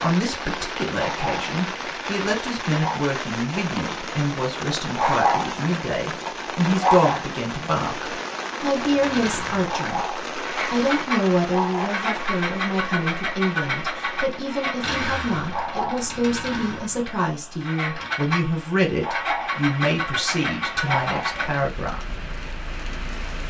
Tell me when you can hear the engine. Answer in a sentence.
The engine can be heard from 8.8 to 23.4 s.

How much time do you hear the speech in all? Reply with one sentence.
The speech can be heard for 22 seconds in total.